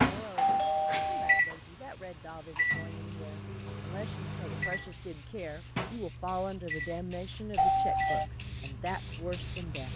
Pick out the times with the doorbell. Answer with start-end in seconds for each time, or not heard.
0.3-1.4, 7.5-8.2.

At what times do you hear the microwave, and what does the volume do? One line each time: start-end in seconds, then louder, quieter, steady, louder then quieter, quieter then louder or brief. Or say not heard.
0.0-9.9 quieter.